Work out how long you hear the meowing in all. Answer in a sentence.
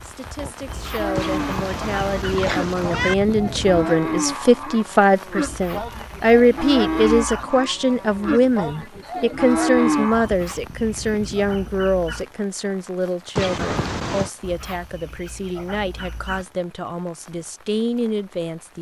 The meowing can be heard for 3 seconds in total.